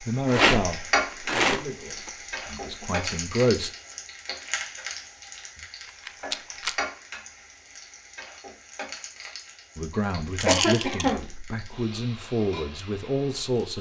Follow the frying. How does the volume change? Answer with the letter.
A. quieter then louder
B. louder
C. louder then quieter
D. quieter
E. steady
D.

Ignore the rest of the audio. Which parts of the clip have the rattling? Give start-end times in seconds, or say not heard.
0.2-2.1, 6.0-6.8, 10.3-11.1.